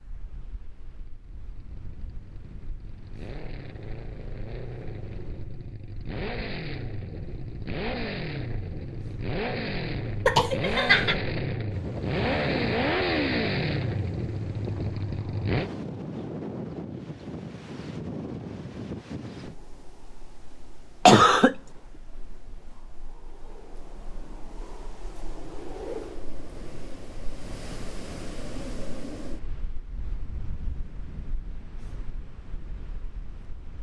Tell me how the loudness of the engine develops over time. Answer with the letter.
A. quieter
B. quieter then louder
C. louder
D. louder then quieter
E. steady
C.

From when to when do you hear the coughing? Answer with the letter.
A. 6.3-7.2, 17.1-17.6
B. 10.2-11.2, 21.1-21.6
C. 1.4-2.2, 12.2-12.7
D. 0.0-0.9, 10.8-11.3
B.